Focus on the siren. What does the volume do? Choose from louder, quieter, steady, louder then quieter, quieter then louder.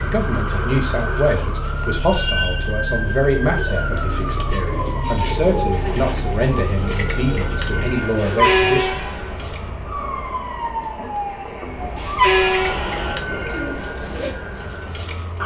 steady.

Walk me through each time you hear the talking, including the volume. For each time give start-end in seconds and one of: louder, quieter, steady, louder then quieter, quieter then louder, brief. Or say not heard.
0.0-8.9 quieter then louder.